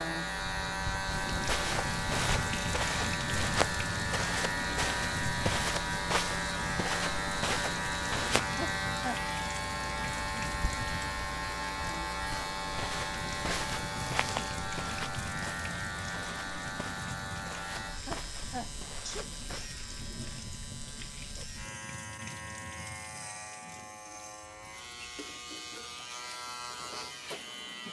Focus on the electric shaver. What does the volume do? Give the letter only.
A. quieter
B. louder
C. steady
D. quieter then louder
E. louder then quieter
A.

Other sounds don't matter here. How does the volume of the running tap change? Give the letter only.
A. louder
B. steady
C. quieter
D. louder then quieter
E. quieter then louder
C.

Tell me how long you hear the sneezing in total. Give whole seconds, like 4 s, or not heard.
2 s.